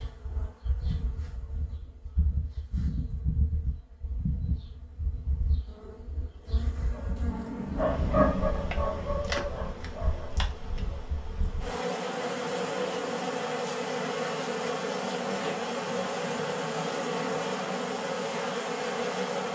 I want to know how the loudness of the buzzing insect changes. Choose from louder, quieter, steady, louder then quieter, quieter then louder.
louder.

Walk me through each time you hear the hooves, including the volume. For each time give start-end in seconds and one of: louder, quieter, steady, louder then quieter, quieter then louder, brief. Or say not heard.
not heard.